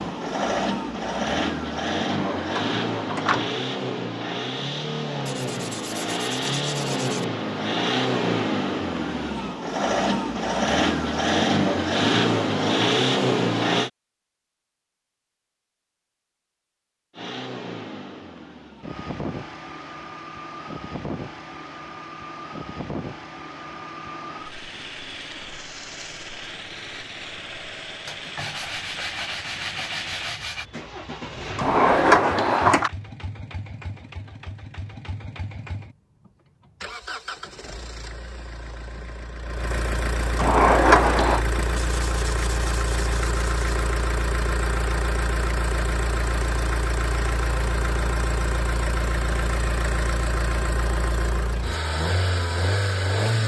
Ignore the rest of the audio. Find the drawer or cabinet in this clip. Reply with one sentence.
You can hear the drawer or cabinet from 2.0 to 3.5 s, from 31.6 to 32.9 s and from 40.4 to 41.4 s.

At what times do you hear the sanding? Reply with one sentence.
The sanding can be heard from 5.2 to 7.2 s, from 28.1 to 30.6 s and from 41.7 to 43.6 s.